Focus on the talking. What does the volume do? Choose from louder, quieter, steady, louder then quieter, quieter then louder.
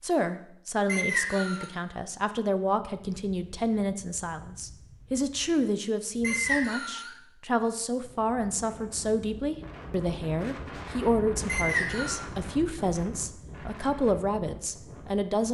steady.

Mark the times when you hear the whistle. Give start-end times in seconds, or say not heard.
0.8-1.7, 6.2-7.1, 11.4-12.2.